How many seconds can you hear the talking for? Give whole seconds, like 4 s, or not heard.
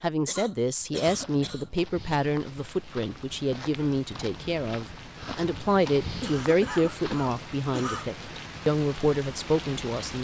10 s.